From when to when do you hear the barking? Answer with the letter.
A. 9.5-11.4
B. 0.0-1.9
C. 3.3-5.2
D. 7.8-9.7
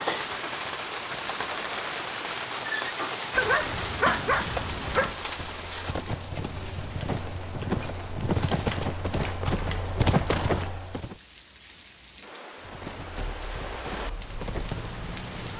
C.